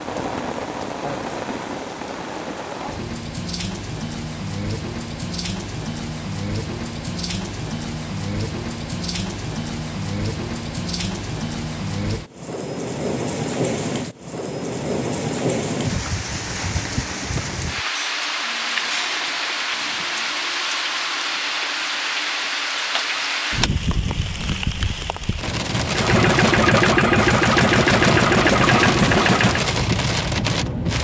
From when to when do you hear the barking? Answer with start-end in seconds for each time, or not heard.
not heard.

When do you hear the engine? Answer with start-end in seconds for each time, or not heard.
25.9-29.7.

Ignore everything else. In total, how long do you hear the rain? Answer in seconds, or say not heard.
31 s.